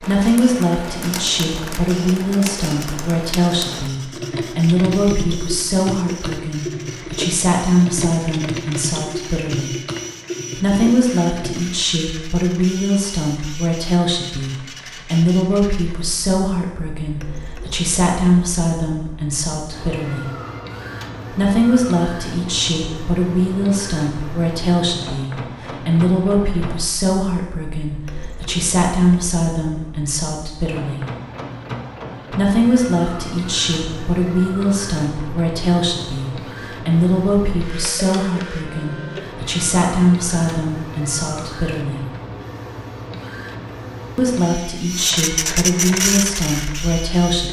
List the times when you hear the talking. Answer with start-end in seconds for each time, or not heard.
0.0-9.8, 10.6-20.3, 21.3-31.1, 32.3-42.0, 44.1-47.4.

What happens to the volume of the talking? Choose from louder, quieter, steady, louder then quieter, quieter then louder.
steady.